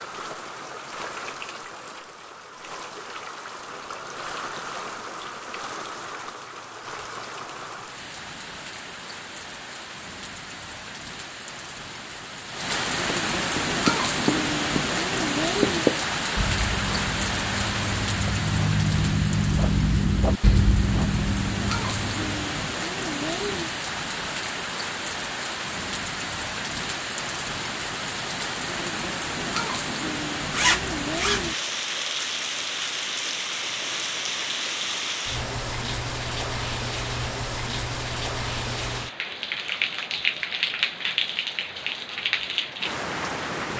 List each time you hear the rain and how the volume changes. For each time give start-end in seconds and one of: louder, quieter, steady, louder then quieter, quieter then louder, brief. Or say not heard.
0.0-43.7 louder.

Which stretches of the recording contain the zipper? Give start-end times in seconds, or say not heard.
30.5-31.5.